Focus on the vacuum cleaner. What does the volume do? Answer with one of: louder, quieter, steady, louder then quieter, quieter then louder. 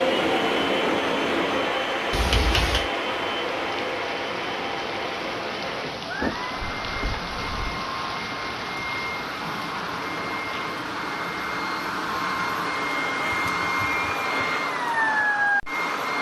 quieter then louder.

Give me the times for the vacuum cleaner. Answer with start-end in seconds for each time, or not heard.
0.0-16.1.